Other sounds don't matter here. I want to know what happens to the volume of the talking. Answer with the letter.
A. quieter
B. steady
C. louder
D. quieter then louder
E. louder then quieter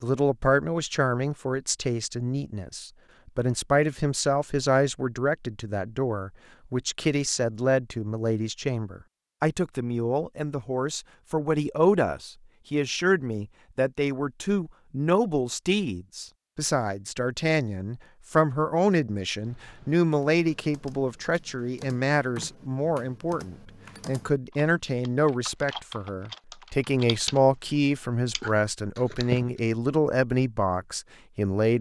B.